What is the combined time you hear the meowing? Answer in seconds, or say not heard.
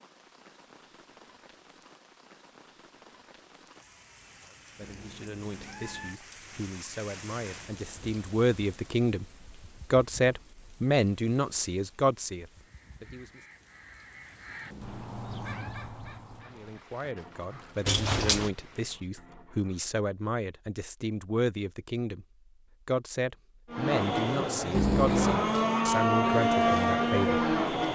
3 s.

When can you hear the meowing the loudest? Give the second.
25 s.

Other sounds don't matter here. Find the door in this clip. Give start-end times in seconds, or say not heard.
17.9-18.5.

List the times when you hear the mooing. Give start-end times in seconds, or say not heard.
23.7-27.9.